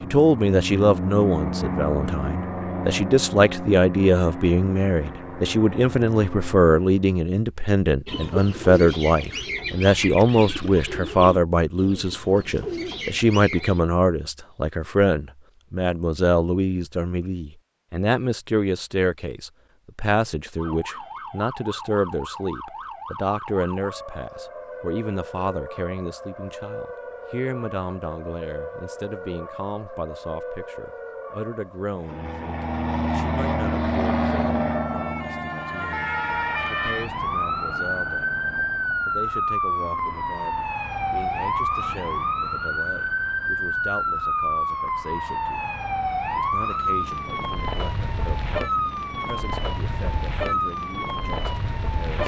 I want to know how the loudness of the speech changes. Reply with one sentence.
The volume of the speech goes down.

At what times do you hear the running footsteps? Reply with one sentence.
You can't hear the running footsteps here.